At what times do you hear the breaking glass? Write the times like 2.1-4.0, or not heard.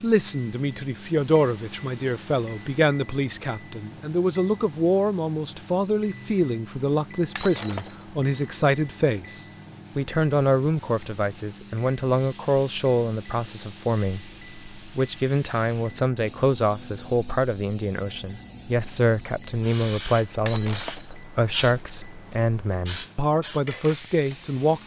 7.3-8.1, 20.4-21.2.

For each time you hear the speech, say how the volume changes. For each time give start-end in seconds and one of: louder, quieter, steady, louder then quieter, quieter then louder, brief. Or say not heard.
0.0-24.8 steady.